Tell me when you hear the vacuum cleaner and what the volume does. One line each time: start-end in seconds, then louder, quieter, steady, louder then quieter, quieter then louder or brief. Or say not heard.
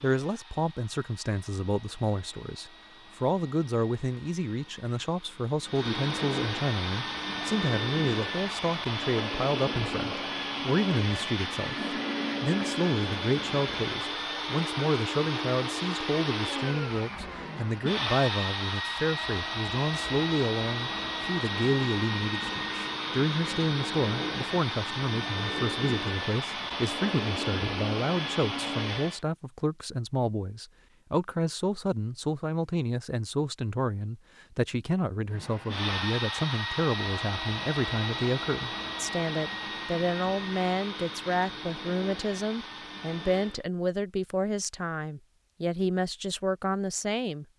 0.0-29.2 louder
35.3-43.6 quieter.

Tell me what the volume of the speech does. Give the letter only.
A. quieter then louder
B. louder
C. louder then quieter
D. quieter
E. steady
E.